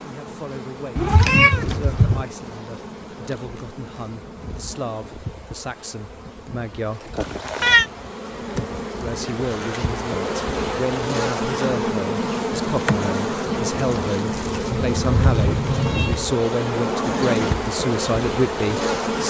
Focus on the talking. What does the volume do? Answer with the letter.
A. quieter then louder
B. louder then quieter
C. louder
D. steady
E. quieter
C.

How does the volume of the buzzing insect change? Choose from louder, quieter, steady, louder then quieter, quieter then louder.
louder.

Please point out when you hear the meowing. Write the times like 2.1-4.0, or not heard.
0.9-2.2, 7.2-7.8, 14.7-16.2.